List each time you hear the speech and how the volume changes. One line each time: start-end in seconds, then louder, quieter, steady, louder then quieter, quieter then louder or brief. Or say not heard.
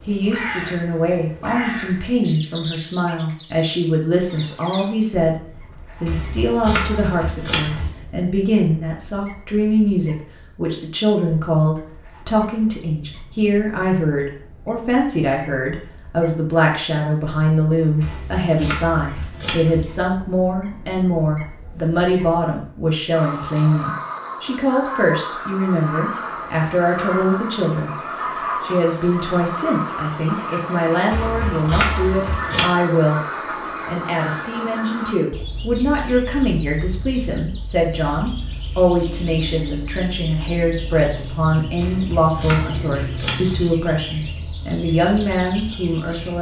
0.0-46.3 steady.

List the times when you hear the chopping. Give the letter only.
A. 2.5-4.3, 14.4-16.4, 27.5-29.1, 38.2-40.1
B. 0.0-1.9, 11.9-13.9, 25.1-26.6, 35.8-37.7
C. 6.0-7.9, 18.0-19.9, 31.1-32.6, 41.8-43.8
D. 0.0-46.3
C.